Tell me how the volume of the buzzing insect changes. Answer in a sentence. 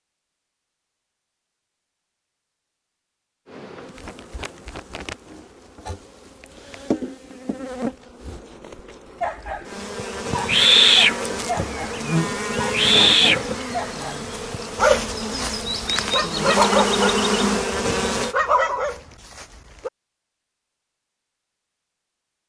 The volume of the buzzing insect goes up.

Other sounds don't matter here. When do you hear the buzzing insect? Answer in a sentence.
You can hear the buzzing insect from 3.5 to 18.4 s.